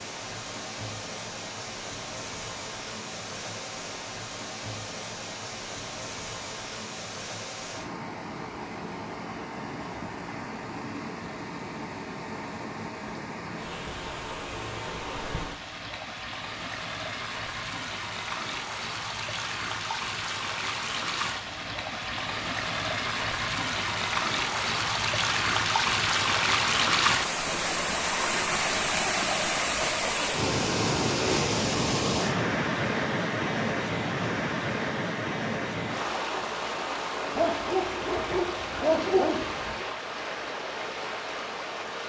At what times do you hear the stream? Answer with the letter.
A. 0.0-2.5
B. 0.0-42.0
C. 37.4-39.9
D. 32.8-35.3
B.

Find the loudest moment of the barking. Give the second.
39 s.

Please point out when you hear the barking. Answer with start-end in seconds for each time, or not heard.
37.4-39.9.